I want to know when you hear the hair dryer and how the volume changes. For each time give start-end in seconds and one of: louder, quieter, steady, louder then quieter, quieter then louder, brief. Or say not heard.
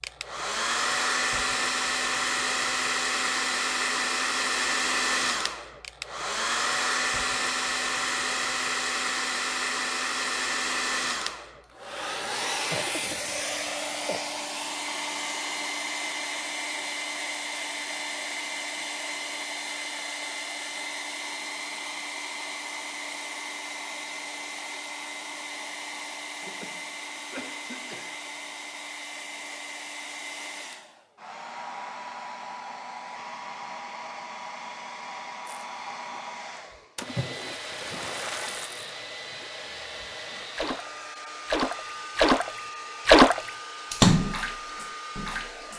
0.0-45.7 quieter.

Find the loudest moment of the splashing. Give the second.
43 s.